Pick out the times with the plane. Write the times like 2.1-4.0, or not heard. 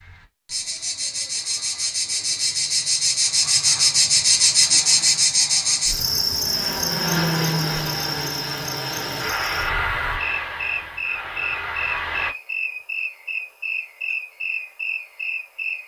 4.5-12.3.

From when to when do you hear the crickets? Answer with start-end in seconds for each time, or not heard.
0.0-15.8.